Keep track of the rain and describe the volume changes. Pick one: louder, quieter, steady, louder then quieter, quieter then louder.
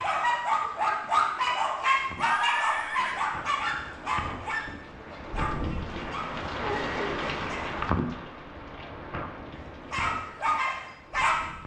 louder then quieter.